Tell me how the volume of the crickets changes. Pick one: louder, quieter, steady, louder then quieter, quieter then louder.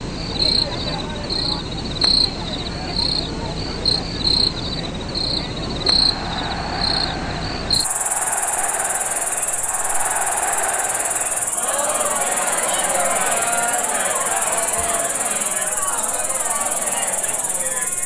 quieter.